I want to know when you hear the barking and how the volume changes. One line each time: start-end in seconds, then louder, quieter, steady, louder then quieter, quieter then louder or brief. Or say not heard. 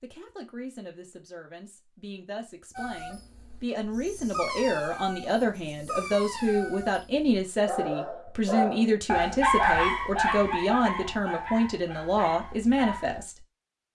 2.8-13.2 louder then quieter.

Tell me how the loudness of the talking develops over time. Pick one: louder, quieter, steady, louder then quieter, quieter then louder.
louder.